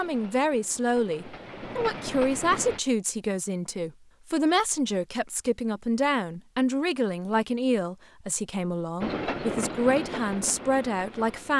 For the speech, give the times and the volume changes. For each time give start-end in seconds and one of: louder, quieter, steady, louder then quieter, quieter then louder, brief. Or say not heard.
0.0-11.5 steady.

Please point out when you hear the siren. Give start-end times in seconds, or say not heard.
not heard.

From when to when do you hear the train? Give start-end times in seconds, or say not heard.
0.0-2.8, 9.0-11.5.